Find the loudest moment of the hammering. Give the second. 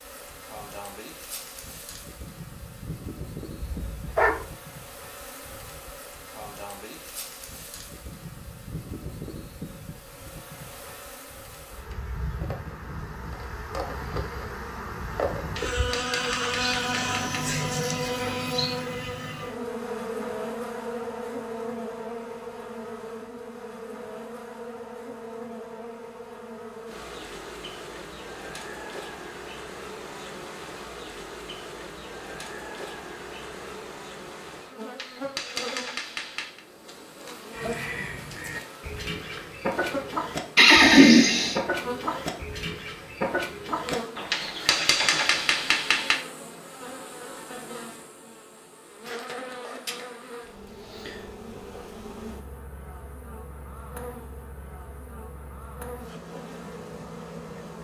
45 s.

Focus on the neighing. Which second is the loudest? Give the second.
41 s.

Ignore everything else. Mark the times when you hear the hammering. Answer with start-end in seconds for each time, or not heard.
15.6-17.4, 35.0-36.6, 44.3-46.1.